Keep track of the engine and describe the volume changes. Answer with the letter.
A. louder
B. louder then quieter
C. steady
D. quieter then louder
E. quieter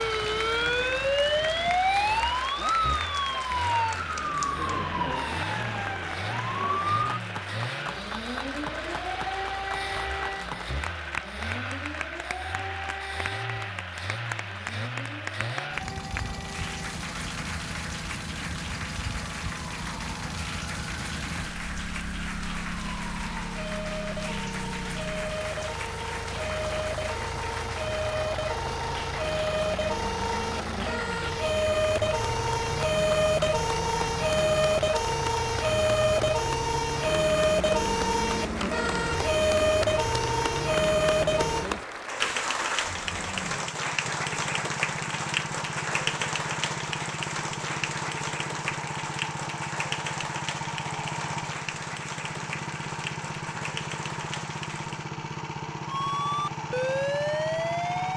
C.